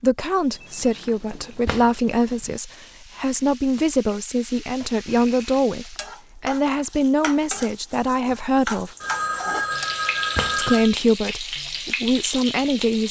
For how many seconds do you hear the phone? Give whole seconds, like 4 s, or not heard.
5 s.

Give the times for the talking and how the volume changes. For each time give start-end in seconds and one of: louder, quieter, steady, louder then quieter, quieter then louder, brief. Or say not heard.
0.0-8.9 steady
10.6-13.0 brief.